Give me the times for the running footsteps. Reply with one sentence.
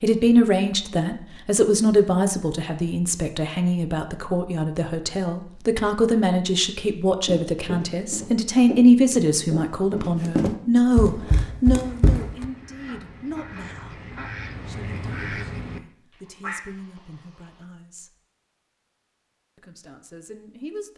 You can hear the running footsteps from 7.2 to 12.4 s.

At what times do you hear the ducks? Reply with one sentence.
You can hear the ducks from 11.1 to 17.6 s.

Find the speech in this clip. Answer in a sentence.
The speech can be heard from 0.0 to 14.0 s, from 14.7 to 18.1 s and from 19.6 to 20.9 s.